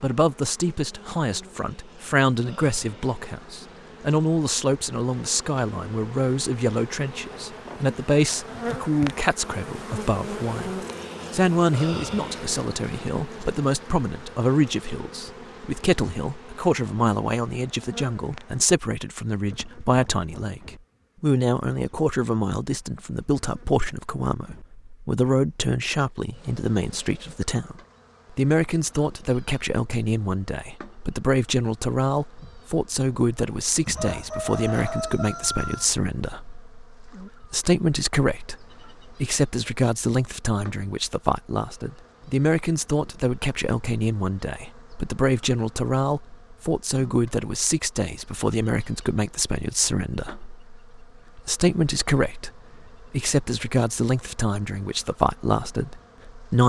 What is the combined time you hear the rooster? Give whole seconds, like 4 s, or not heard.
2 s.